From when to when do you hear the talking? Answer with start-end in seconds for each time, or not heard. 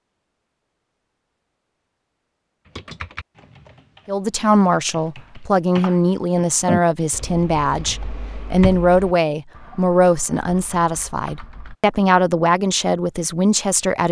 4.0-14.0.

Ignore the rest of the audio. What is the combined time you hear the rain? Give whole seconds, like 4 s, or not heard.
not heard.